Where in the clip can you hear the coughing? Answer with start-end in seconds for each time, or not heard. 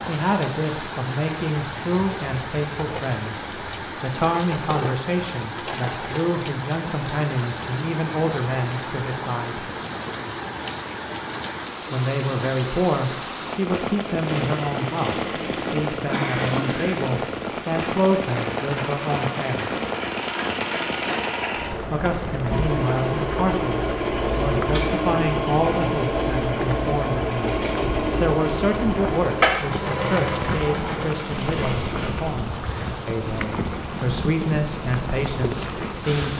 16.1-17.0.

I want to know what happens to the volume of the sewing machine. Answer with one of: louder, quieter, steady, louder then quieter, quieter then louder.
louder.